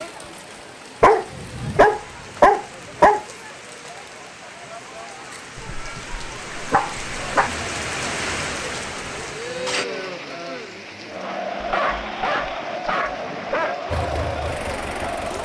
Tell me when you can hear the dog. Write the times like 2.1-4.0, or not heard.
1.0-3.2, 5.5-7.5, 11.6-13.8.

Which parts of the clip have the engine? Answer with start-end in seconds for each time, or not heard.
13.9-15.4.